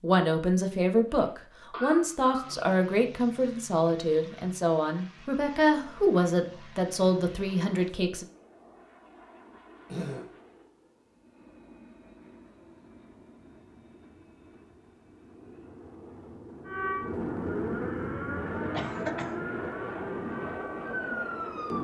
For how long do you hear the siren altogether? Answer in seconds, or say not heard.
5 s.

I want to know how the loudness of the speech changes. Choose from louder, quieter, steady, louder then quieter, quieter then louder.
steady.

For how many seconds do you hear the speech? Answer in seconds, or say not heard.
8 s.